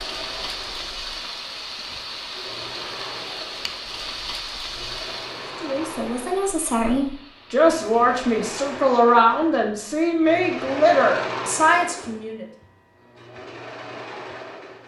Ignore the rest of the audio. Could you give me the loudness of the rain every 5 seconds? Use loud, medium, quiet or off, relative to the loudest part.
loud, medium, off.